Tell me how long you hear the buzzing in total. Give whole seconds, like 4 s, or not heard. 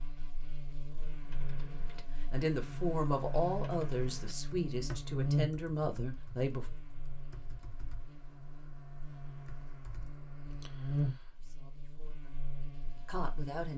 14 s.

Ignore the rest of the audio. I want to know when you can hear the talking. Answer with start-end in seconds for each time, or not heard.
1.9-6.7, 11.3-13.7.